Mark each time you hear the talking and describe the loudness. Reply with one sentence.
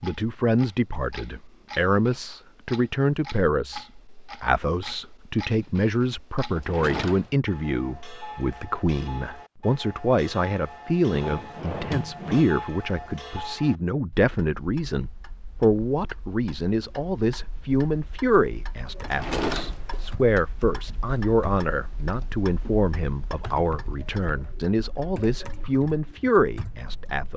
The talking can be heard from 0.0 to 27.3 s, at a steady volume.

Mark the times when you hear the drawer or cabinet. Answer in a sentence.
You can hear the drawer or cabinet from 6.5 to 7.3 s, from 11.2 to 12.4 s and from 19.0 to 20.1 s.